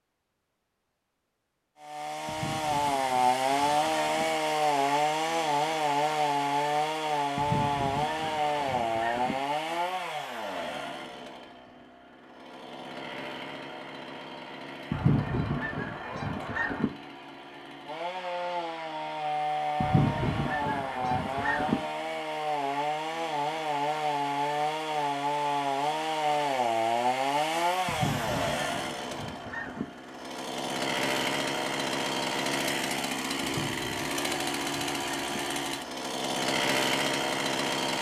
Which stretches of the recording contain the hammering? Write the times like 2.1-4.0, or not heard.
not heard.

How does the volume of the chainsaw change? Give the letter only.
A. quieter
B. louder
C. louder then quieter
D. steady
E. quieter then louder
E.